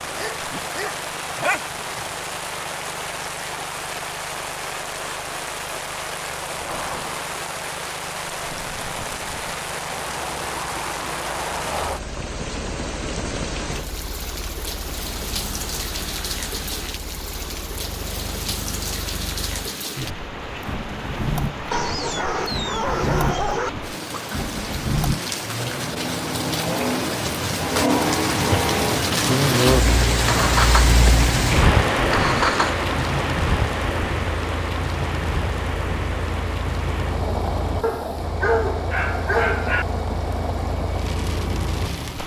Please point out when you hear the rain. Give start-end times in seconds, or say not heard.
0.0-42.2.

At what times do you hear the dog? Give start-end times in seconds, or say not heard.
0.1-2.0, 21.7-23.7, 37.8-39.9.